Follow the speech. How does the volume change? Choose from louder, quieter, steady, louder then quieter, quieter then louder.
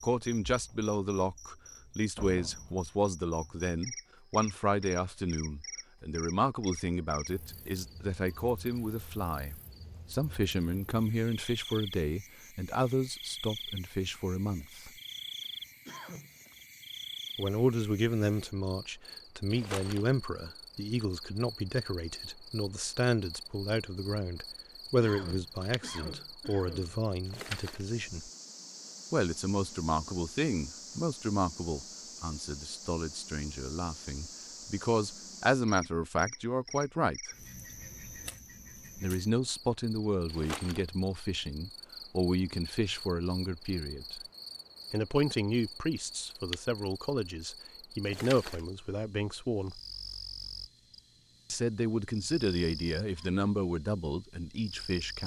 steady.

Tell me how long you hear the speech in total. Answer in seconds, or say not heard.
48 s.